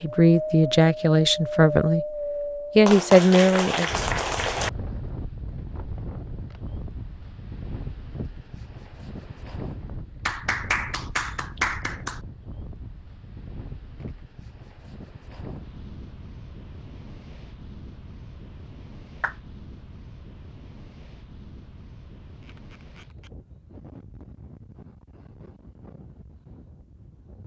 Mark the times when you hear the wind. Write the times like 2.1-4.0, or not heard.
0.0-27.4.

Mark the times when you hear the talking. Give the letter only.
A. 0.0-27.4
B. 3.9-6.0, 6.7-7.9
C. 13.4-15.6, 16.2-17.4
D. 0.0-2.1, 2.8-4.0
D.